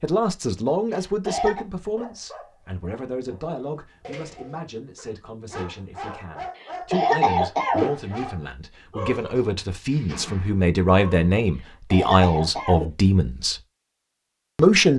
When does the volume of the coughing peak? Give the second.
7 s.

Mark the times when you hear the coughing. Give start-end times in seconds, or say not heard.
0.9-1.6, 6.5-8.0, 11.6-12.9.